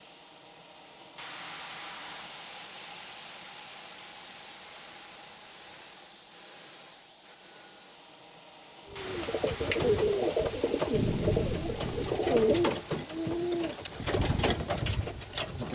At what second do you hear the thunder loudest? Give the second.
11 s.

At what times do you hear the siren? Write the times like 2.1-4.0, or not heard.
not heard.